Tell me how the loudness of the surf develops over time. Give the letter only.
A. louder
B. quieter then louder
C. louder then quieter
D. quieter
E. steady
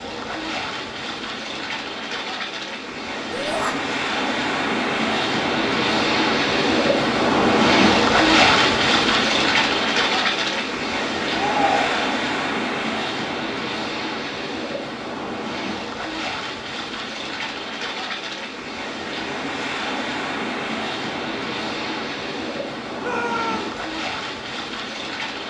C.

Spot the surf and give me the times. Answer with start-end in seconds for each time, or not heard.
0.0-25.4.